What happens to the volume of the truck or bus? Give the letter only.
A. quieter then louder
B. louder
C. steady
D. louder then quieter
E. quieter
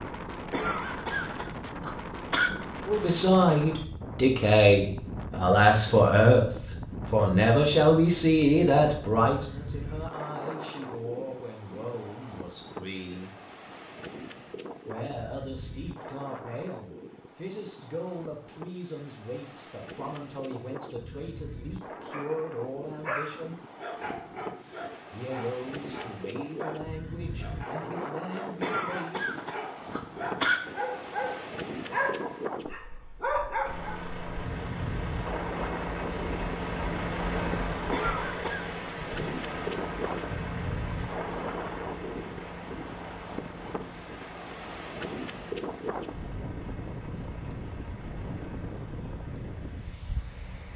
E.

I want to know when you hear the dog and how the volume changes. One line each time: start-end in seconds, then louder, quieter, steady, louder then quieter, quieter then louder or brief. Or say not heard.
22.1-34.0 quieter then louder.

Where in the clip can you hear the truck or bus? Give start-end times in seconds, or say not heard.
33.6-50.7.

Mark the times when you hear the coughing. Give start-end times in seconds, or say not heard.
0.5-2.5, 28.6-30.6, 37.9-38.6.